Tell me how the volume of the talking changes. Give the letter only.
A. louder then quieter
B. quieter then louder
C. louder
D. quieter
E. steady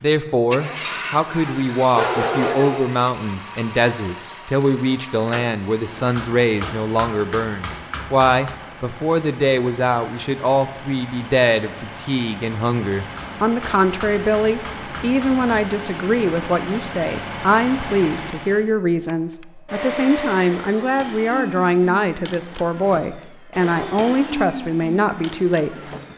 E.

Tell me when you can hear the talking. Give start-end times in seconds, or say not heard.
0.0-25.8.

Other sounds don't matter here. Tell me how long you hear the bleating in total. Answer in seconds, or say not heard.
not heard.